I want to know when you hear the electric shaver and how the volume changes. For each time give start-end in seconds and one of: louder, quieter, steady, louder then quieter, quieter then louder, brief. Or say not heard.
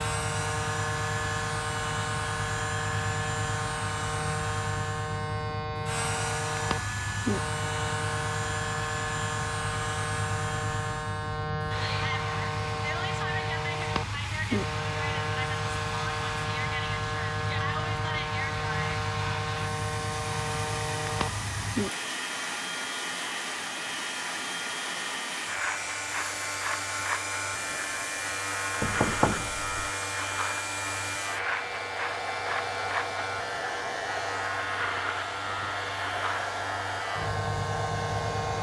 0.0-38.5 steady.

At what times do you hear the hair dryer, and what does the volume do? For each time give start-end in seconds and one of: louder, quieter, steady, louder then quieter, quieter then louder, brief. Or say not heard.
0.0-38.5 steady.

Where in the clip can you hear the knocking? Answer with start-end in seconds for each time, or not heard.
28.8-29.9.